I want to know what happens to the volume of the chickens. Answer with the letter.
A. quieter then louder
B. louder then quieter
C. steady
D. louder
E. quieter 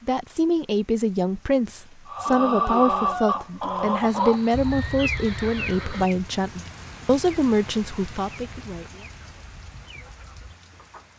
E.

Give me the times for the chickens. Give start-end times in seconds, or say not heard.
2.0-11.1.